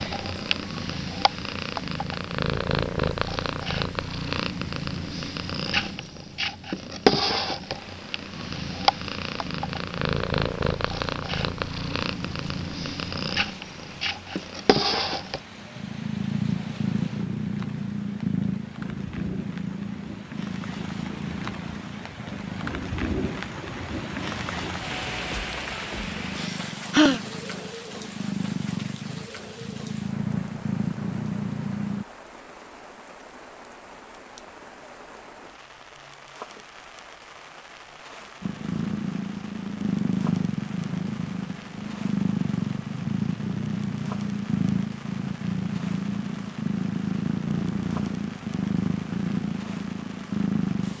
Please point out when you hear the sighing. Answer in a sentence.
The sighing can be heard from 26.4 to 27.2 s.